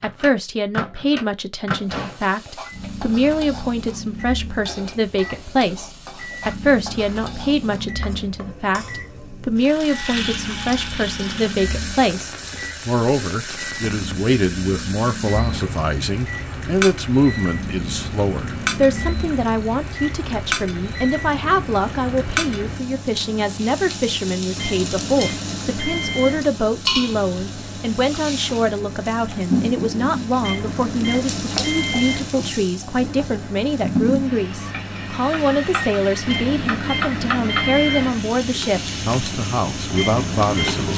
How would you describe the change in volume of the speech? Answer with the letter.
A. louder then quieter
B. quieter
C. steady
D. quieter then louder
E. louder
C.